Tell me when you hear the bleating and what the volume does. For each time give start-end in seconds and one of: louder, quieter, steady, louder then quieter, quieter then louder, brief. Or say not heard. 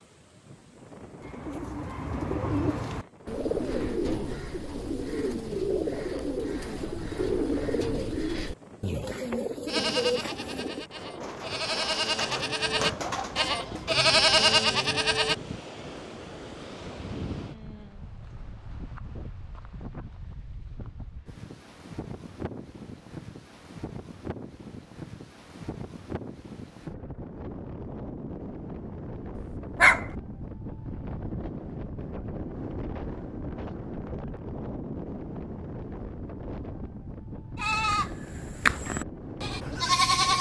9.7-15.3 louder
37.5-40.3 brief.